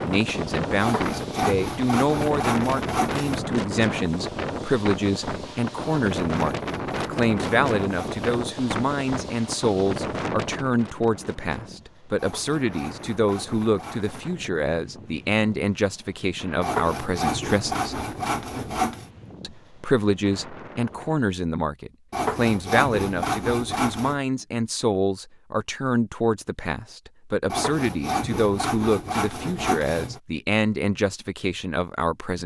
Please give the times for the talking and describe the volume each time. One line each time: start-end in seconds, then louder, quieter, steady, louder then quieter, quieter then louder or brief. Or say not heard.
0.0-18.0 steady
19.4-32.4 steady.